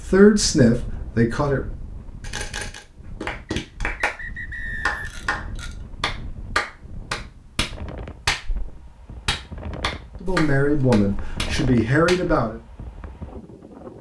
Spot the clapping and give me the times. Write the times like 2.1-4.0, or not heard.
3.2-4.2, 4.8-12.4.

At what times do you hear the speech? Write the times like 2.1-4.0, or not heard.
0.1-1.6, 10.2-12.6.